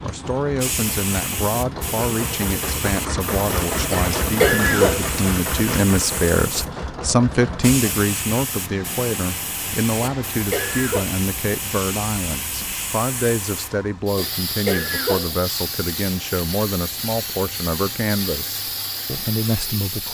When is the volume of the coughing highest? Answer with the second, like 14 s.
5 s.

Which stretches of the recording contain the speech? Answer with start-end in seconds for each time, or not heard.
0.0-20.1.